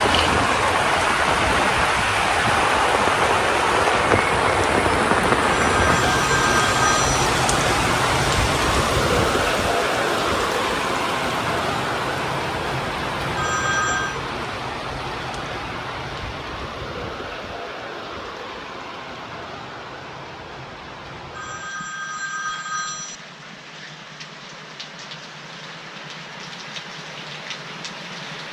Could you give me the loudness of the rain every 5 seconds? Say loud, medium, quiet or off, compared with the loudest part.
loud, loud, medium, quiet, quiet, quiet.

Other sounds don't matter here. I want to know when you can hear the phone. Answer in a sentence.
You can hear the phone from 5.5 to 7.2 s, from 13.3 to 14.2 s and from 21.4 to 23.2 s.